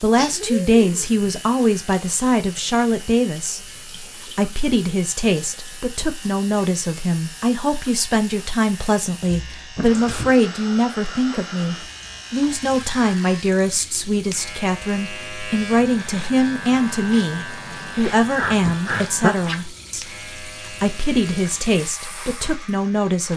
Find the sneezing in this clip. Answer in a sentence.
You can hear the sneezing from 0.1 to 1.1 s, from 9.8 to 10.3 s and from 18.4 to 19.4 s.